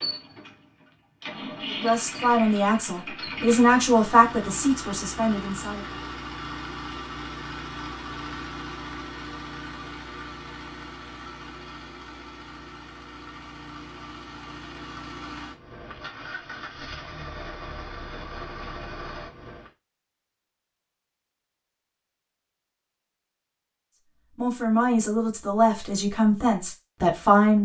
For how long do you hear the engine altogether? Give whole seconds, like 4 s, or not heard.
20 s.